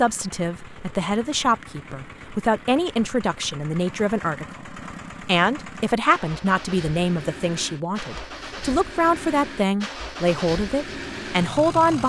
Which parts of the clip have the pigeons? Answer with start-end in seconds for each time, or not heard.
not heard.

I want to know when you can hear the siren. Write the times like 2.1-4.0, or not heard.
not heard.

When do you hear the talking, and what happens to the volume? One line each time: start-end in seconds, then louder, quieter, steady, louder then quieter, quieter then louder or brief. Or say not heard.
0.0-12.0 steady.